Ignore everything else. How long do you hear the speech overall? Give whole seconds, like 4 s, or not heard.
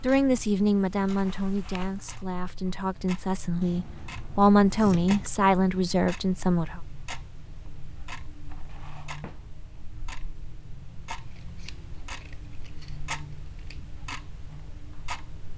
7 s.